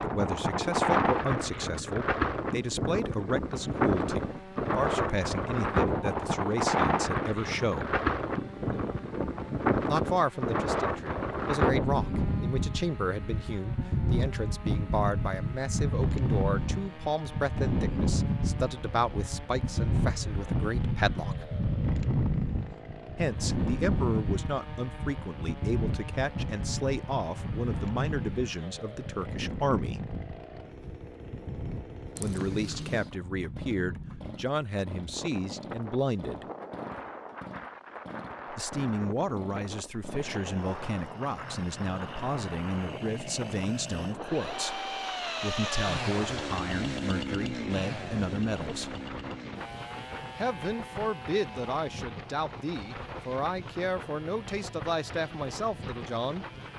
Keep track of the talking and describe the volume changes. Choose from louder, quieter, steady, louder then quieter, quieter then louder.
steady.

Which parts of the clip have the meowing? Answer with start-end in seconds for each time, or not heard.
32.1-33.1.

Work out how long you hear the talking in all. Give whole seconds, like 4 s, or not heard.
47 s.